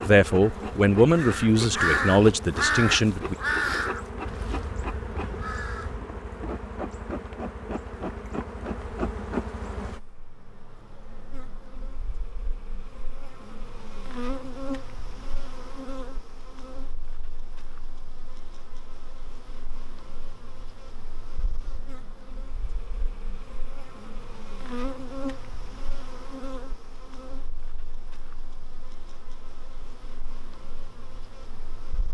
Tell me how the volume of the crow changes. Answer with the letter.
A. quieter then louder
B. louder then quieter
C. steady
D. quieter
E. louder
B.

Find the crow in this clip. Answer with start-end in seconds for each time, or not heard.
0.4-6.0.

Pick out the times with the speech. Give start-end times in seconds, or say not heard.
0.0-3.4.